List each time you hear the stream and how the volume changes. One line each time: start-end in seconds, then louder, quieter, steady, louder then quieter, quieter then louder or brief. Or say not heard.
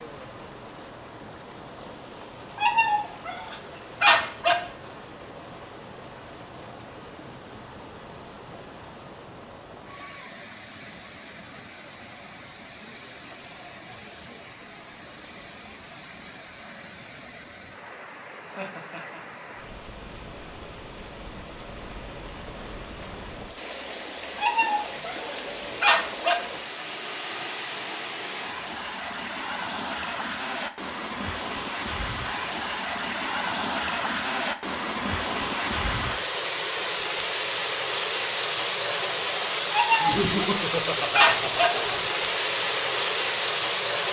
0.0-44.0 louder.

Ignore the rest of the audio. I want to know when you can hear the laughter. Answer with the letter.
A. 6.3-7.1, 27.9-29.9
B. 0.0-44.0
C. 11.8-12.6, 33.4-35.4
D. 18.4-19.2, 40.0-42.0
D.